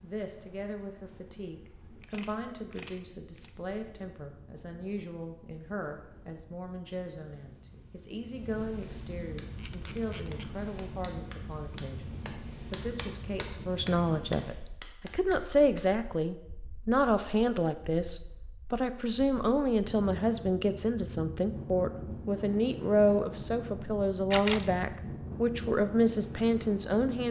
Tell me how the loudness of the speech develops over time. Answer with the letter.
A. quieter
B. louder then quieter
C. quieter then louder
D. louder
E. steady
D.